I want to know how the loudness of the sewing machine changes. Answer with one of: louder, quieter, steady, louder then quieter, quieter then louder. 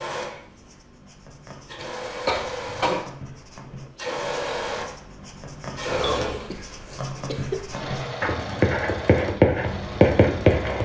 louder then quieter.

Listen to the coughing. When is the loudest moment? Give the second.
3 s.